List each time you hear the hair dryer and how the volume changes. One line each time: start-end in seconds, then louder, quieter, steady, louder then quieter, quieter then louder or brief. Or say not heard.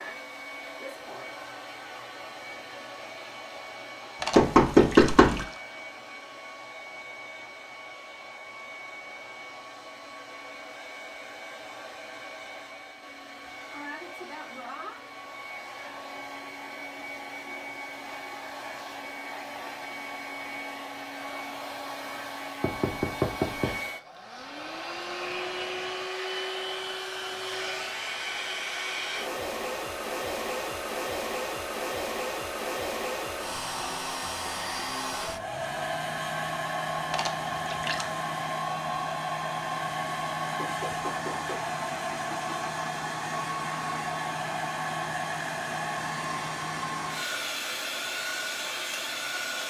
0.0-49.6 louder.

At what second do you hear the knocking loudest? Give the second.
5 s.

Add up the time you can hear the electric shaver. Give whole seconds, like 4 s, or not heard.
not heard.